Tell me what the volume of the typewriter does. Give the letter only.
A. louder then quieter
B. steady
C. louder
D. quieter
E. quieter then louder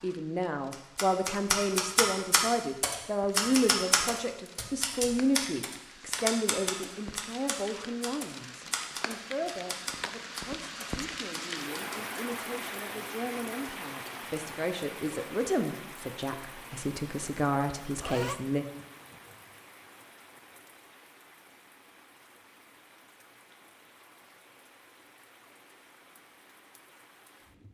D.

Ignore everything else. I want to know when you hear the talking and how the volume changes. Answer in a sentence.
You can hear the talking from 0.0 to 18.6 s, getting quieter then louder.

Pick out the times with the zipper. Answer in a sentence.
You can hear the zipper from 17.8 to 18.4 s.